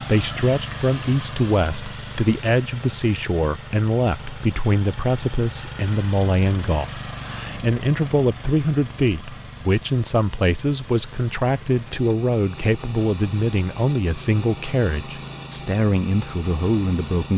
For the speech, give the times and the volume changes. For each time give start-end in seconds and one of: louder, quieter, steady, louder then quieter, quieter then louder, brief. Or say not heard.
0.0-17.3 steady.